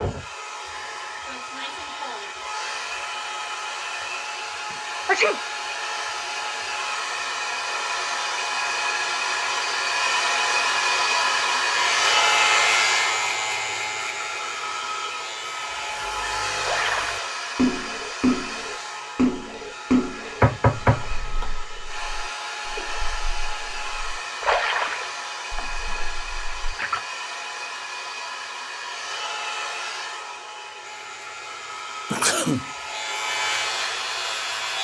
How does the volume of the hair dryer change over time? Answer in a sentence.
The loudness of the hair dryer goes up, then down.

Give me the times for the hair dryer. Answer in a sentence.
The hair dryer can be heard from 0.0 to 34.8 s.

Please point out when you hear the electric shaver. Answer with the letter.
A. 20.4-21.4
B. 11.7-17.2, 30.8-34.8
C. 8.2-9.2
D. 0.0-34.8
B.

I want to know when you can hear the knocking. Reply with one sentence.
You can hear the knocking from 20.4 to 21.4 s.